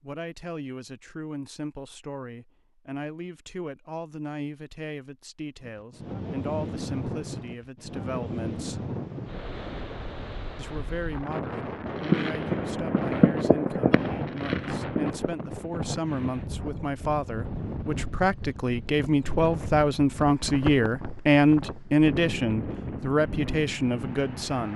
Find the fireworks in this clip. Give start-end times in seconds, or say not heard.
11.8-15.3.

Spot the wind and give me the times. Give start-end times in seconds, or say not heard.
5.6-24.7.